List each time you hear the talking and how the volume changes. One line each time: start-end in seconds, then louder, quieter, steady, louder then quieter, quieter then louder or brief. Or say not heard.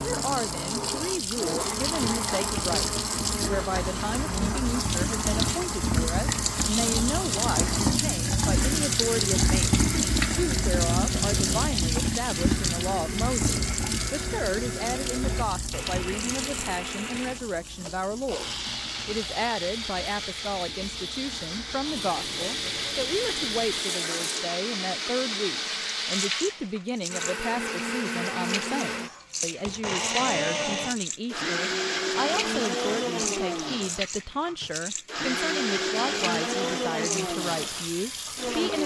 0.0-38.8 steady.